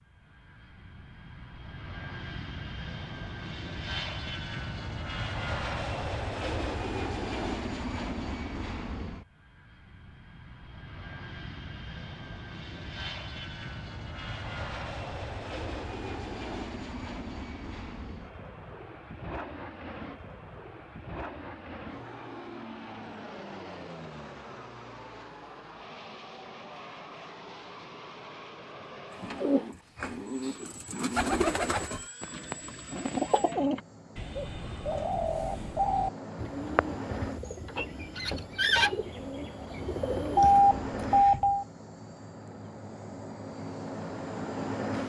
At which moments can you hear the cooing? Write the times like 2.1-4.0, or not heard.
29.1-40.5.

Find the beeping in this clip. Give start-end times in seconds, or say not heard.
40.4-41.6.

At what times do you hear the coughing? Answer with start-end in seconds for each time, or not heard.
not heard.